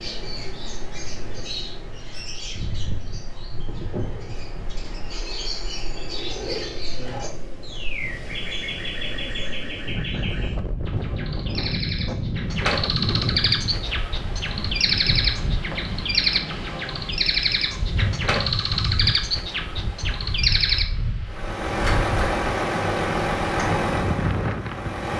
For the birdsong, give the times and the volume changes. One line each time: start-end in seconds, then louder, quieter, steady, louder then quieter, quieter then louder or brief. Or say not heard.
0.0-20.9 louder.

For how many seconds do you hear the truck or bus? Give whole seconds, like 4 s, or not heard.
4 s.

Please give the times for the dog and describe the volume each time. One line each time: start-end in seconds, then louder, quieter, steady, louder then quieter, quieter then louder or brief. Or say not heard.
not heard.